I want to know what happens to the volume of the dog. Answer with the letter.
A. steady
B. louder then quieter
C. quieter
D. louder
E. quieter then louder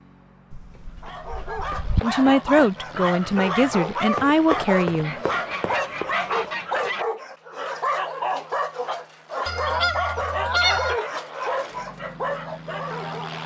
A.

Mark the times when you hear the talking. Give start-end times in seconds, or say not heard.
2.0-5.2.